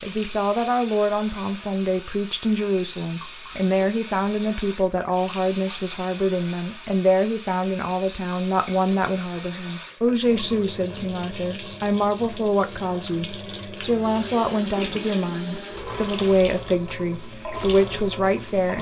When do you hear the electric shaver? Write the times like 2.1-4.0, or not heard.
not heard.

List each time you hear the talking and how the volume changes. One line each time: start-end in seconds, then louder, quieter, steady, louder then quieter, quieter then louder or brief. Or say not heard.
0.0-18.7 steady.